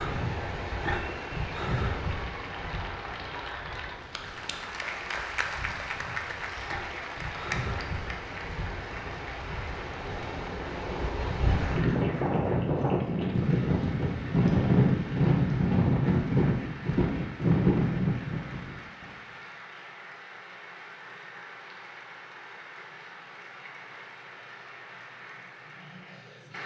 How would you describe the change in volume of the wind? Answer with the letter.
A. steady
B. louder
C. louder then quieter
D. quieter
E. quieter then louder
E.